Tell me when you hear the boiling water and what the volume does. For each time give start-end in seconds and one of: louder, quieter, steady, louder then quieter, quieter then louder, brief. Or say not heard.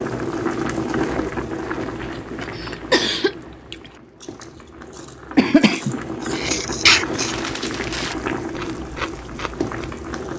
0.0-10.3 quieter then louder.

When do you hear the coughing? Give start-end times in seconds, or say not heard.
2.9-3.4, 5.3-7.3.